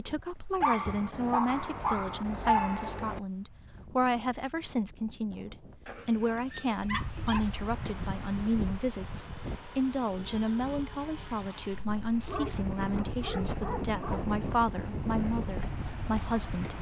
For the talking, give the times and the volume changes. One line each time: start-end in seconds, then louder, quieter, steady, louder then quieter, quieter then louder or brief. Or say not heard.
0.0-16.7 steady.